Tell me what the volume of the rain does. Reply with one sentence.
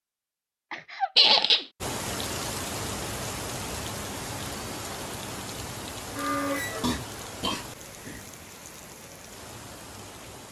The volume of the rain goes down.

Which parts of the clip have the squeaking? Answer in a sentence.
You can hear the squeaking from 1.1 to 1.6 s and from 6.2 to 6.9 s.